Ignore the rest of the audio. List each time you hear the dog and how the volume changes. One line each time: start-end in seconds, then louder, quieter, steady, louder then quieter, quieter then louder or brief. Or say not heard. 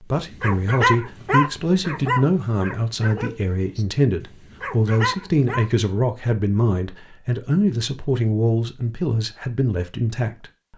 0.3-5.7 quieter then louder.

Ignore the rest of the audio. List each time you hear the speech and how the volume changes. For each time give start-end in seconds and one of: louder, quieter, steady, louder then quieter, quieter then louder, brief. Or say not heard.
0.0-10.7 steady.